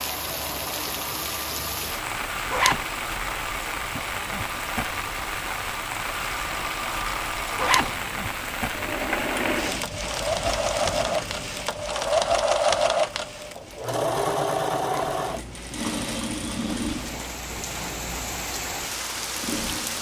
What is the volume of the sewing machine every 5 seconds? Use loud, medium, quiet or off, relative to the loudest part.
quiet, medium, loud, medium.